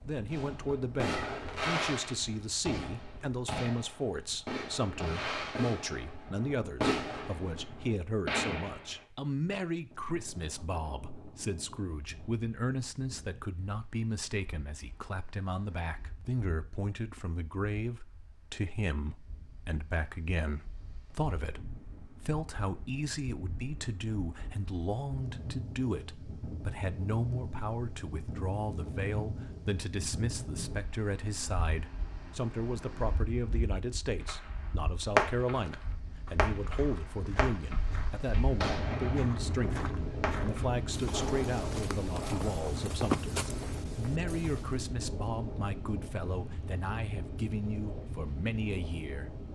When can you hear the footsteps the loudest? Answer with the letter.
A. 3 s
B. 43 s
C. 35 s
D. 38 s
B.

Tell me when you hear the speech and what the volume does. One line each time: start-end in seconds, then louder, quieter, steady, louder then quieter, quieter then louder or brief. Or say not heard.
0.1-49.3 steady.